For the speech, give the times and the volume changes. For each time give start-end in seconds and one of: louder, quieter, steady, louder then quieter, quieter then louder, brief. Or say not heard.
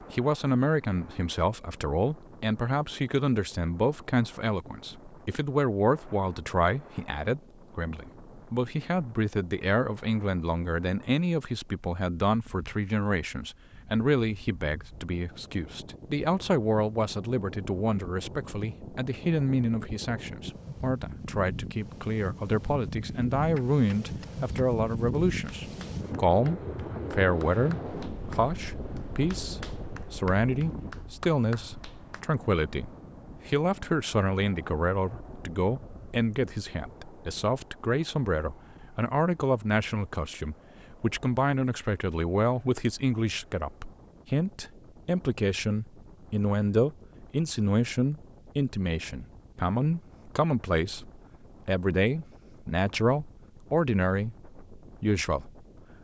0.0-55.6 steady.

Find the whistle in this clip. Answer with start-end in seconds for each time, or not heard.
not heard.